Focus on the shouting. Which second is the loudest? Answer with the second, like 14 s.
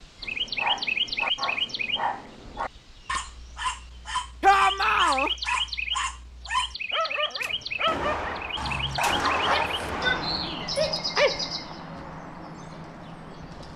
5 s.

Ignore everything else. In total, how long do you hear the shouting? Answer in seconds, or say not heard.
2 s.